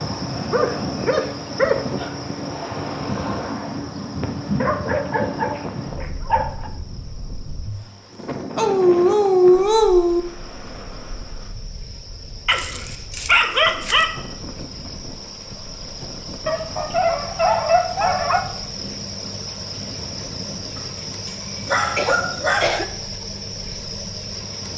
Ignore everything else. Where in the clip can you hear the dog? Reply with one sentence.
You can hear the dog from 0.5 to 2.1 s, from 4.6 to 6.7 s, from 8.6 to 10.2 s, from 12.4 to 14.1 s, from 16.4 to 18.4 s and from 20.8 to 22.8 s.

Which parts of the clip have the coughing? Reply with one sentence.
The coughing can be heard from 21.9 to 22.9 s.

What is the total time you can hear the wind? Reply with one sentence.
The wind can be heard for 25 seconds in total.